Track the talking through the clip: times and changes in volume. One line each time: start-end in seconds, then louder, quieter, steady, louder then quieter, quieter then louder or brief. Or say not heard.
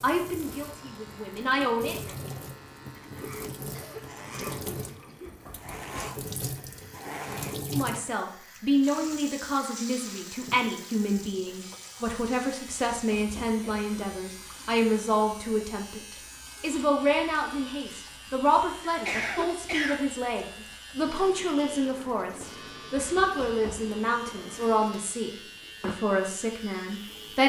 0.0-1.9 brief
7.7-27.4 steady.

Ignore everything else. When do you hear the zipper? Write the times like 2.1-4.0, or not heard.
not heard.